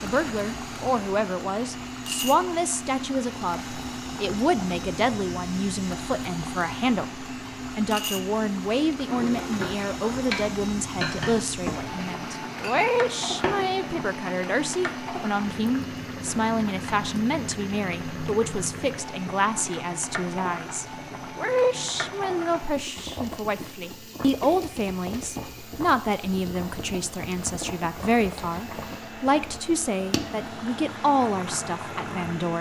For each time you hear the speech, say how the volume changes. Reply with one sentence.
The speech can be heard from 0.0 to 32.5 s, at a steady volume.